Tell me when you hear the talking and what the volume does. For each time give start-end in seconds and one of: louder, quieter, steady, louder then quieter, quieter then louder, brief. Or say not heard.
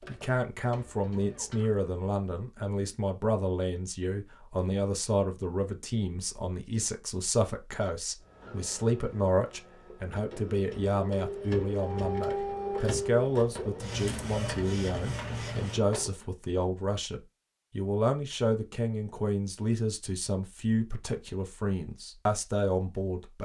0.1-23.4 steady.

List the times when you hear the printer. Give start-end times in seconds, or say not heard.
0.0-1.7, 8.2-16.2.